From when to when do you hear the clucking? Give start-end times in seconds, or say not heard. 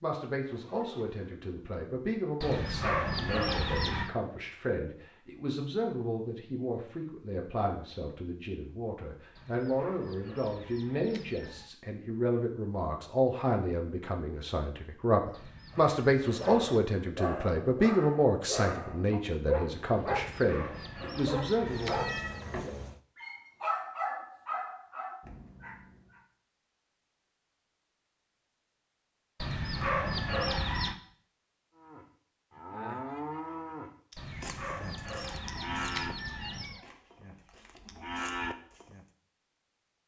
2.4-4.1, 9.3-11.7, 15.3-16.6, 20.1-22.4, 29.4-30.9, 34.1-36.8.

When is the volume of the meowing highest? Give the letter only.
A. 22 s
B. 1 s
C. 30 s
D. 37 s
A.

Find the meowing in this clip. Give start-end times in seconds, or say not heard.
0.5-1.2, 21.6-23.0, 36.2-36.9.